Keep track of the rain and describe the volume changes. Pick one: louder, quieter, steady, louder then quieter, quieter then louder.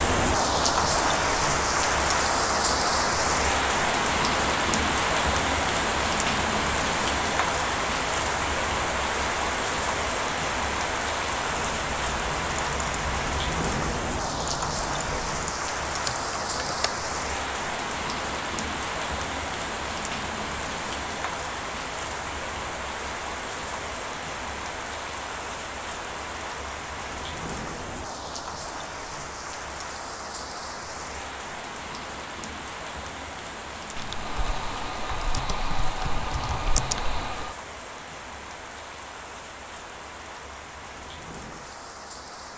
quieter.